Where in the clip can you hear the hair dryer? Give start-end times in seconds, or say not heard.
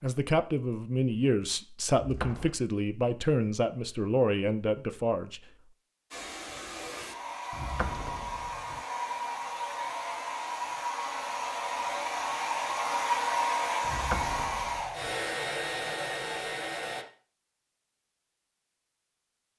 6.1-17.1.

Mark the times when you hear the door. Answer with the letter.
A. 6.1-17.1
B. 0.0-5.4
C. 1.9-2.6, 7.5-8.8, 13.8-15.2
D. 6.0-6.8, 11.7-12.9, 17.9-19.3
C.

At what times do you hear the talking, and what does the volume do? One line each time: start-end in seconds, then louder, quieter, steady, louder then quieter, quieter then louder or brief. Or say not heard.
0.0-5.4 steady.